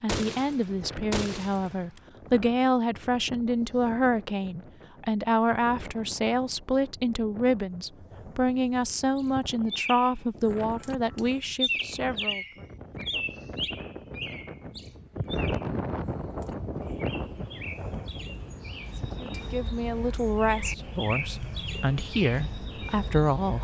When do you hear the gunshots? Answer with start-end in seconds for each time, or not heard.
0.1-2.0.